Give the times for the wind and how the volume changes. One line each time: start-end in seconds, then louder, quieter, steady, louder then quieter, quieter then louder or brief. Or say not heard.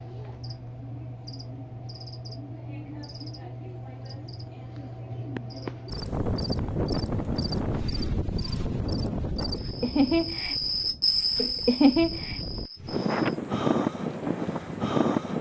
5.8-15.3 quieter then louder.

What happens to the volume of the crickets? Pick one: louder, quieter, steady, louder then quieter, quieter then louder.
louder.